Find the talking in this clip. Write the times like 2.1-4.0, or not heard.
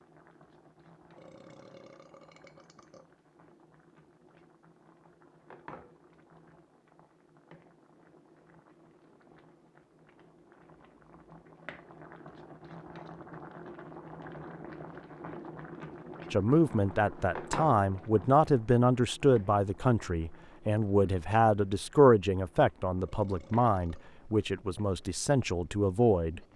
16.3-26.4.